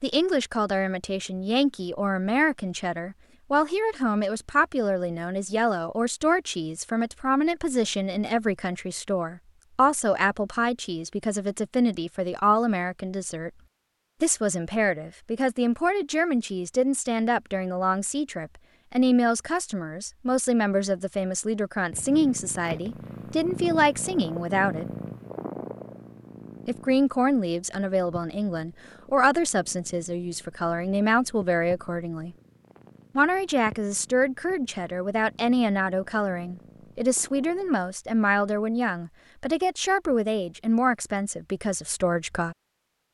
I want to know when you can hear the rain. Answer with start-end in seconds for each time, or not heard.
not heard.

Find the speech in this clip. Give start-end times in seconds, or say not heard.
0.0-13.5, 14.2-24.9, 26.6-32.4, 33.1-42.5.